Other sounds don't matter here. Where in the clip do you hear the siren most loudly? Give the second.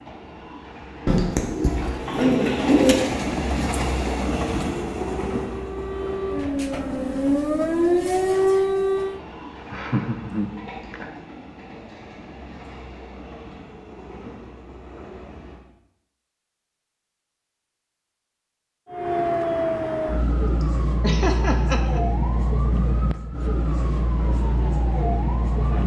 8 s.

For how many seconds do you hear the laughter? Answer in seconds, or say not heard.
3 s.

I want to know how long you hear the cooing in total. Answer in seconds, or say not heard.
2 s.